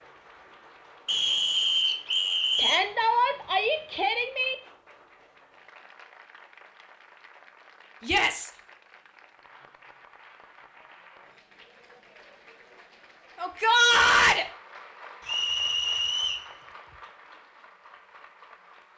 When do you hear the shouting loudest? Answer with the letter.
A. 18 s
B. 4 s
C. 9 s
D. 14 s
D.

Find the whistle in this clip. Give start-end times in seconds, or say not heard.
1.1-2.8, 15.2-16.5.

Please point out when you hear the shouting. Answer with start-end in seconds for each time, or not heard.
2.5-4.5, 8.0-8.5, 13.3-14.4.